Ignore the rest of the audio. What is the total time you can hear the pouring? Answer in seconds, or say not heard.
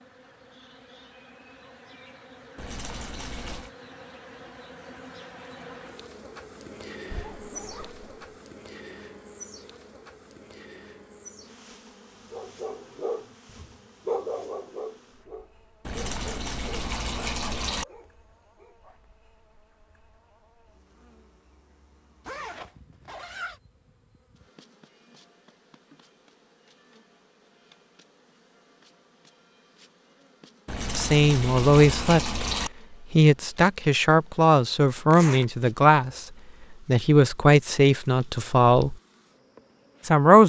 5 s.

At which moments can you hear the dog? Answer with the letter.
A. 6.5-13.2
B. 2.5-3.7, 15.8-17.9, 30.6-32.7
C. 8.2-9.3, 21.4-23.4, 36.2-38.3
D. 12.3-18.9
D.